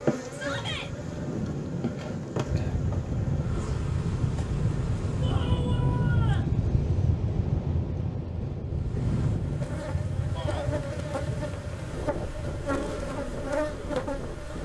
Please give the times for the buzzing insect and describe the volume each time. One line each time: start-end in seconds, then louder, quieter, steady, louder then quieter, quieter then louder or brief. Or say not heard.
0.0-5.5 quieter
8.7-14.6 louder.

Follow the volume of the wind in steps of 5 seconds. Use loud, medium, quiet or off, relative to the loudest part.
loud, loud, medium.